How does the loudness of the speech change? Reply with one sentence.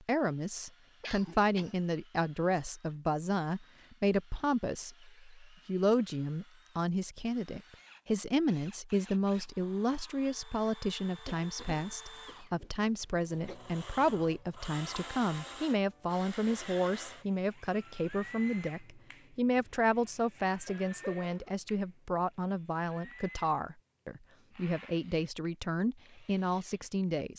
The loudness of the speech stays about the same.